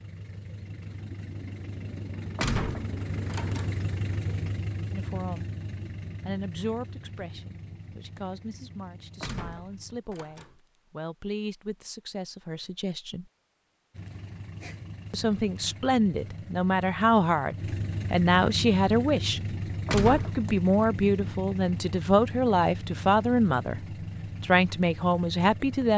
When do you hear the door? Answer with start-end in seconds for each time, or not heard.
2.4-3.8, 9.2-10.6, 19.9-20.5.